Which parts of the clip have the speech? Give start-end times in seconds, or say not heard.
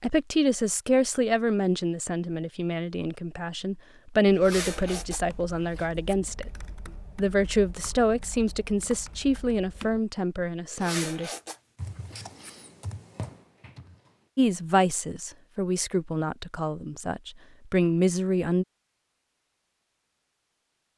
0.0-6.5, 7.2-11.3, 14.3-18.6.